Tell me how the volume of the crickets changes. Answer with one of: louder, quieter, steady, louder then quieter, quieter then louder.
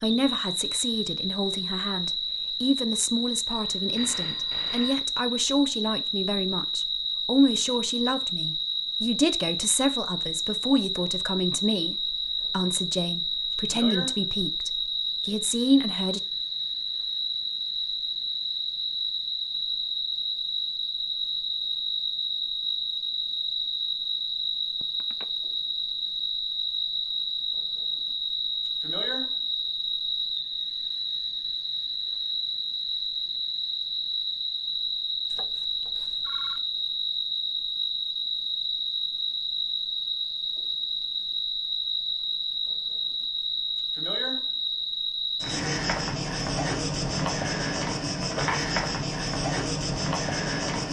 steady.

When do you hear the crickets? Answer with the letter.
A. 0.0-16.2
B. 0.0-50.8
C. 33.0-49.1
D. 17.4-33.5
B.